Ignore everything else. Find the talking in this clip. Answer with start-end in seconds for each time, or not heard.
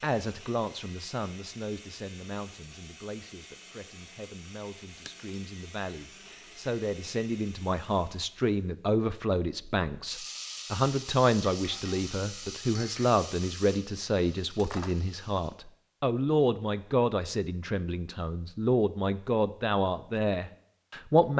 0.0-21.3.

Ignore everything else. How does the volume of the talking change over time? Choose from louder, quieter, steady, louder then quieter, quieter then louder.
louder.